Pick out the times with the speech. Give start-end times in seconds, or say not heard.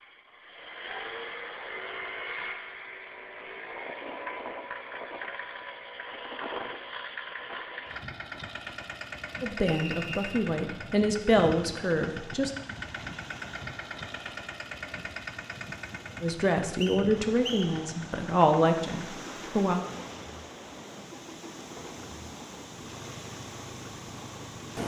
9.4-12.5, 16.2-19.8.